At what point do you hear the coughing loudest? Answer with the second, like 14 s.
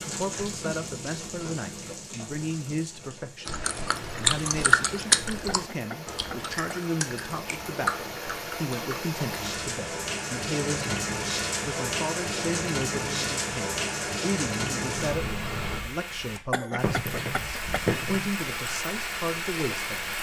17 s.